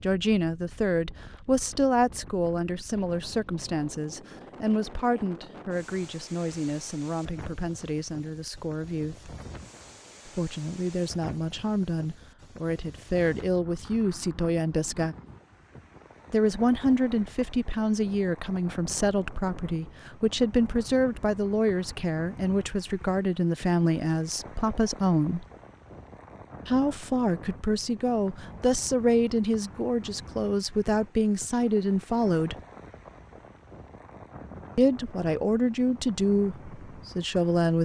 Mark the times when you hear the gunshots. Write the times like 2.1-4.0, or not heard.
not heard.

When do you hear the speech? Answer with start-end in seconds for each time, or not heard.
0.0-9.3, 10.2-15.2, 16.3-25.4, 26.6-32.6, 34.8-37.8.